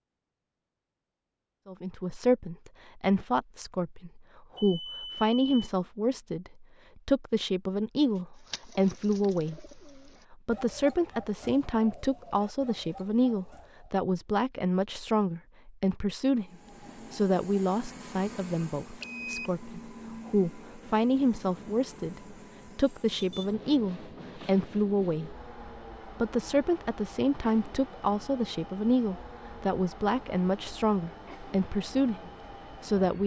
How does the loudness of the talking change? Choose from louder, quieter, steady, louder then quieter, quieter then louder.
steady.